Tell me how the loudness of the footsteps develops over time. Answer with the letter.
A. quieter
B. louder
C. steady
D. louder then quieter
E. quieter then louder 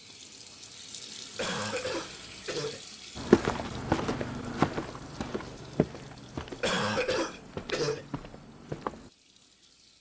A.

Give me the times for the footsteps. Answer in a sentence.
You can hear the footsteps from 3.1 to 9.1 s.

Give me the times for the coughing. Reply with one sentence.
You can hear the coughing from 1.4 to 2.9 s and from 6.6 to 8.1 s.